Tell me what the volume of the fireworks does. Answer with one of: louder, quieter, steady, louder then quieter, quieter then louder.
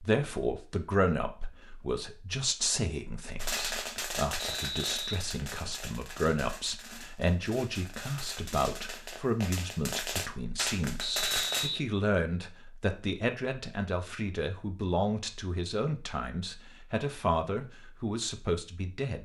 quieter then louder.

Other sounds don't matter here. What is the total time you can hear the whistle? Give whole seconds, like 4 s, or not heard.
2 s.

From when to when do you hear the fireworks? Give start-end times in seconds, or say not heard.
3.4-11.7.